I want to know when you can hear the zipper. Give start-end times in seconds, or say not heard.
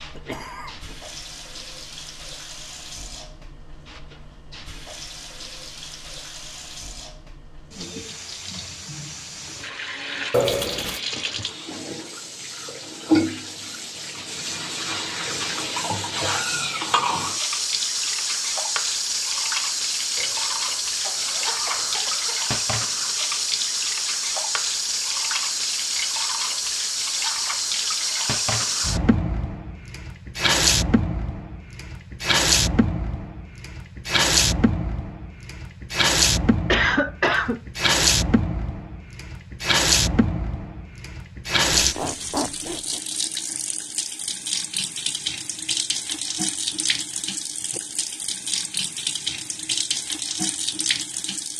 10.3-11.0, 20.1-22.0, 41.7-43.0.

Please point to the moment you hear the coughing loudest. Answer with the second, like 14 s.
37 s.